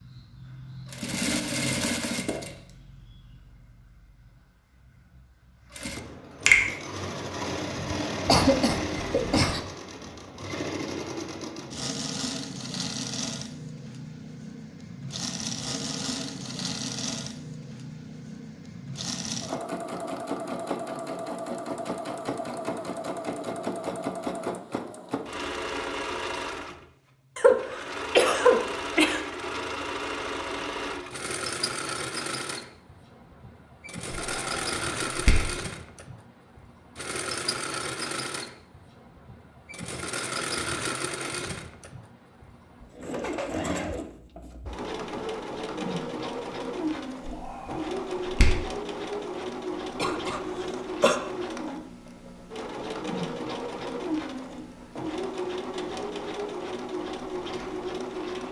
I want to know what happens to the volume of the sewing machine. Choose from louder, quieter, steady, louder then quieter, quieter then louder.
steady.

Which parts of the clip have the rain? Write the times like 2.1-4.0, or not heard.
not heard.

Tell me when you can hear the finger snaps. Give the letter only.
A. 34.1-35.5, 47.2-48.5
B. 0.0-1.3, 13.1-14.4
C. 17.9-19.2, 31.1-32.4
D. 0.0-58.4
A.